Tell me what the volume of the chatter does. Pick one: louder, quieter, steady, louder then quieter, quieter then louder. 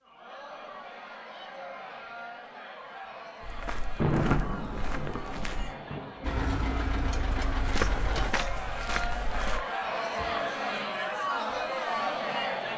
louder.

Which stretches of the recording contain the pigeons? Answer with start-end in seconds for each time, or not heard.
not heard.